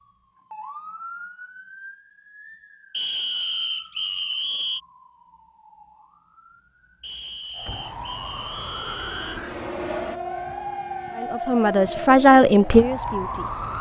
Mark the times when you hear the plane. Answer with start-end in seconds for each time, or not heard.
7.7-10.2.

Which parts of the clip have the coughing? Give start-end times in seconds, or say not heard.
not heard.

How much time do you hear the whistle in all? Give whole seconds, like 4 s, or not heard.
4 s.